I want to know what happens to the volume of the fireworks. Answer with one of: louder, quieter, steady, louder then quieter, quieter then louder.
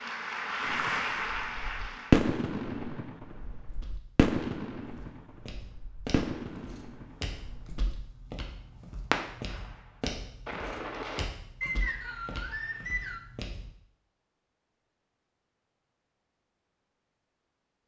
quieter then louder.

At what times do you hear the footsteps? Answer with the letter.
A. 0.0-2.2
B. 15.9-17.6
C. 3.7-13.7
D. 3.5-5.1
C.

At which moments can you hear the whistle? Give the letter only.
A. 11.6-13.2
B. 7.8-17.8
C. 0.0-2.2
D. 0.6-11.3
A.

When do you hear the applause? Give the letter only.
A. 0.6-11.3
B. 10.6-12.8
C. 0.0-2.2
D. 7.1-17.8
C.